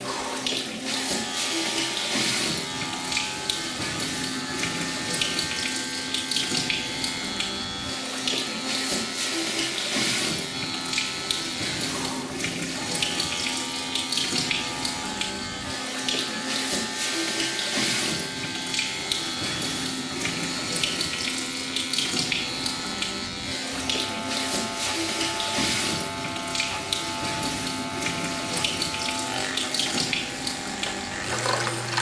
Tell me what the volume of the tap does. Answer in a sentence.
The loudness of the tap stays about the same.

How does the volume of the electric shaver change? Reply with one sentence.
The volume of the electric shaver stays about the same.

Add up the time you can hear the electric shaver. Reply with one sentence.
The electric shaver can be heard for 32 seconds in total.